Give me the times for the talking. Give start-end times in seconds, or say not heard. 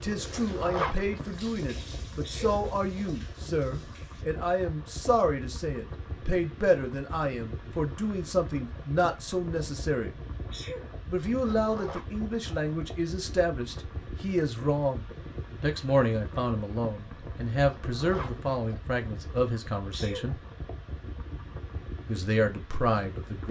0.0-10.2, 11.1-20.4, 22.1-23.4.